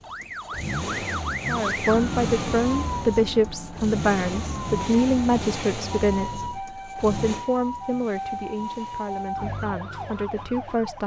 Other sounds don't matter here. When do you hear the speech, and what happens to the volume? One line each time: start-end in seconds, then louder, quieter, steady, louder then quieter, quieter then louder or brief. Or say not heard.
1.4-11.0 quieter.